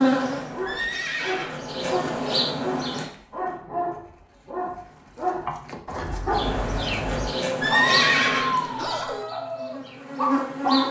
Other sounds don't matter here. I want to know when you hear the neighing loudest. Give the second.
8 s.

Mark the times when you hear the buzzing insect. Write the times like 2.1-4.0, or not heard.
0.0-3.1, 6.2-10.8.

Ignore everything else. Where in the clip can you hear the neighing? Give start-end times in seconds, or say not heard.
0.7-2.2, 7.6-9.2.